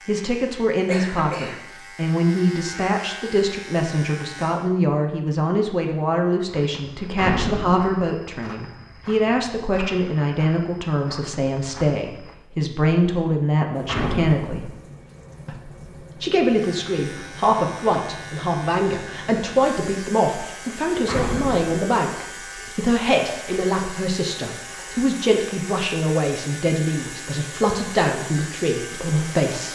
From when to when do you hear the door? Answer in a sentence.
The door can be heard from 7.2 to 8.0 s, from 13.8 to 14.5 s and from 21.1 to 21.8 s.